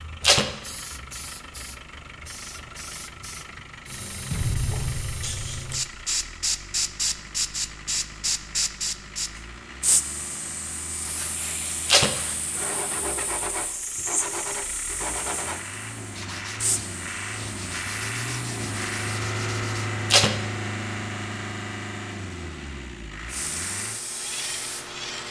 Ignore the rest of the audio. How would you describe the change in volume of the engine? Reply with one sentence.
The volume of the engine goes up.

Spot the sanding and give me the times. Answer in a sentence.
You can hear the sanding from 11.0 to 19.9 s.